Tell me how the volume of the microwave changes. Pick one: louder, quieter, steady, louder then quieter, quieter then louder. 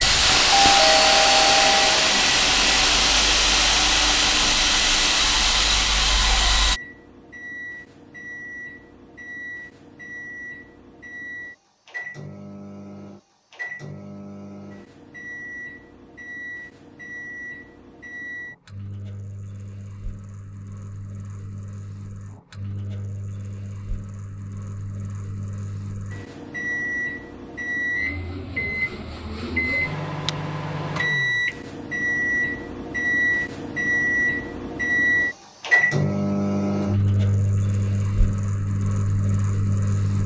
louder.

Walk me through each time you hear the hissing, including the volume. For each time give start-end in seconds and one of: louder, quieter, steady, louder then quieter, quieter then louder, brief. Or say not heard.
0.0-6.8 steady.